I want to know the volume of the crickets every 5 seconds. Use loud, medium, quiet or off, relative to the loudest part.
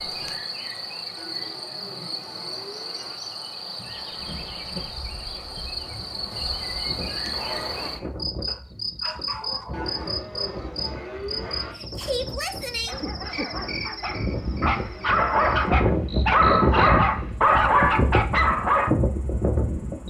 loud, loud, loud, quiet.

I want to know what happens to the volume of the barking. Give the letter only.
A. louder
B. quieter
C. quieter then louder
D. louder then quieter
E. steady
A.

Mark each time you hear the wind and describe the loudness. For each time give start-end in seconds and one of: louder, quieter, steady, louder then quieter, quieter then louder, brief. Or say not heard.
3.9-20.0 louder.